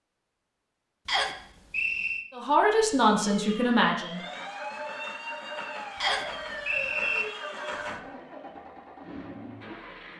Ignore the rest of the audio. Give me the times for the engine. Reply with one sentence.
The engine can be heard from 4.0 to 10.1 s.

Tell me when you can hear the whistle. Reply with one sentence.
The whistle can be heard from 1.1 to 2.2 s and from 6.0 to 7.2 s.